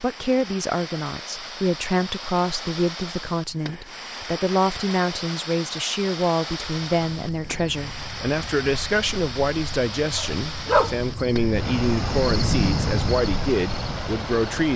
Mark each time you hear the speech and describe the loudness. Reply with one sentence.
You can hear the speech from 0.0 to 14.7 s, at a steady volume.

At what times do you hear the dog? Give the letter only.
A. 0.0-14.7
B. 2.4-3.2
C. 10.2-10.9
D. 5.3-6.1
C.